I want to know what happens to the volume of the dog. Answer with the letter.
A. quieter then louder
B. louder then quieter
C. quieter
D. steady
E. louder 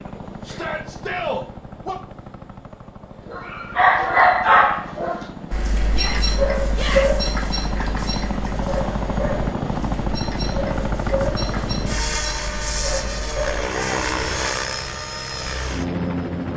C.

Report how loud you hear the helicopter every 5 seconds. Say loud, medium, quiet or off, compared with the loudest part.
quiet, loud, loud, loud.